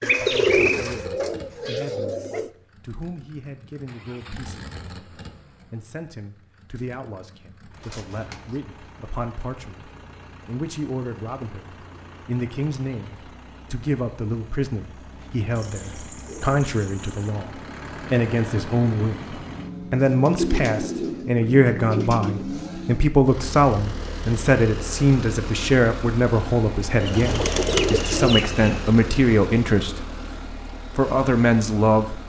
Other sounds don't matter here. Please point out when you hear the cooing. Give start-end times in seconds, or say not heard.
0.0-2.5, 7.8-8.6, 15.6-17.3, 19.9-22.4, 27.0-28.9.